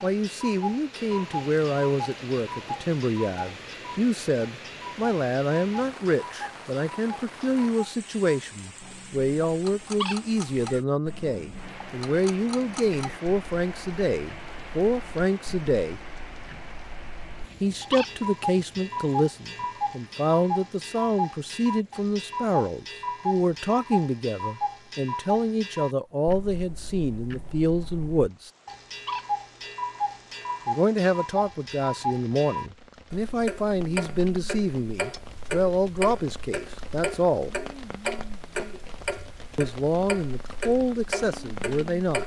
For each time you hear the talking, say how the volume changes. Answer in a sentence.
You can hear the talking from 0.0 to 16.0 s, at a steady volume; from 17.6 to 28.5 s, at a steady volume; from 30.6 to 37.5 s, at a steady volume; and briefly from 39.5 to 42.2 s.